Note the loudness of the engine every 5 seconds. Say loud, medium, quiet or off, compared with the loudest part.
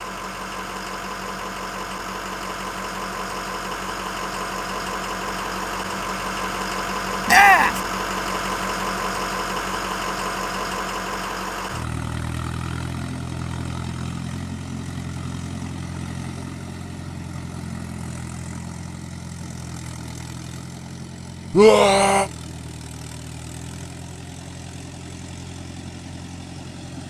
loud, loud, loud, medium, medium, medium.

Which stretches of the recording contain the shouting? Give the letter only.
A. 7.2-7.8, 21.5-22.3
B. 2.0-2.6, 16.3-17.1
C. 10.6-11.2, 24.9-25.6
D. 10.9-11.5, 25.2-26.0
A.